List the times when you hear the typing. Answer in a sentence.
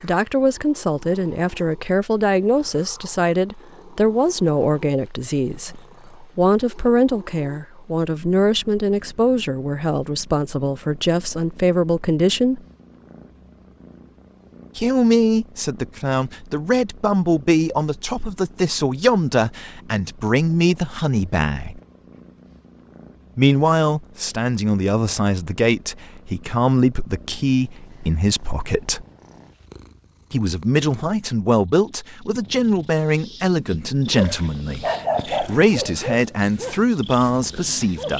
The typing can't be heard in this clip.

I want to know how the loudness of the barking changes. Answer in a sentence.
The loudness of the barking goes down.